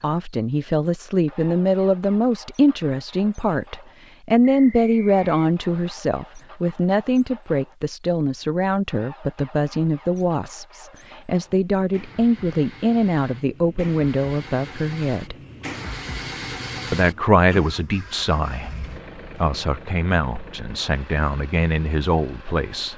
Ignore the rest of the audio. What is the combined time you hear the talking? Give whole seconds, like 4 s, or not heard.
21 s.